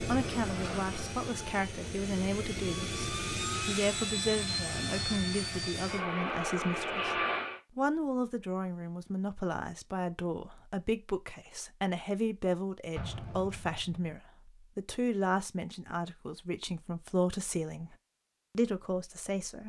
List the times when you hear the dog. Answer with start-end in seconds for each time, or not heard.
not heard.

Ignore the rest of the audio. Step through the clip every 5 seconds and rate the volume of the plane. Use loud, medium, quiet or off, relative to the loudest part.
loud, loud, off, off.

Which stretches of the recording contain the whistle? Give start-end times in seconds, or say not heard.
not heard.